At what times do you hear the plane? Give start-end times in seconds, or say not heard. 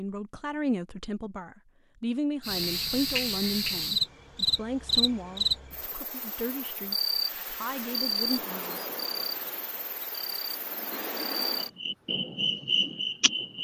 not heard.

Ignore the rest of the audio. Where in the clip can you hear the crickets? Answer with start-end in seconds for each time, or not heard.
2.4-13.5.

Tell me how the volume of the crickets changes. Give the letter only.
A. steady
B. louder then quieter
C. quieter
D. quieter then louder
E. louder
D.